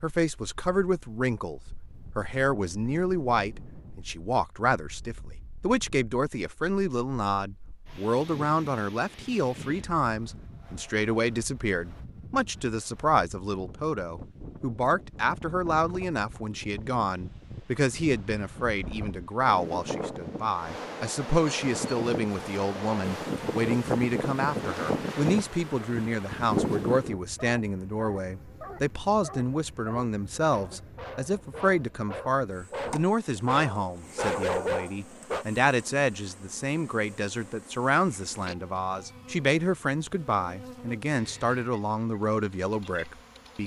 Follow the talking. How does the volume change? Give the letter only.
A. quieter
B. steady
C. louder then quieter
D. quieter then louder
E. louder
B.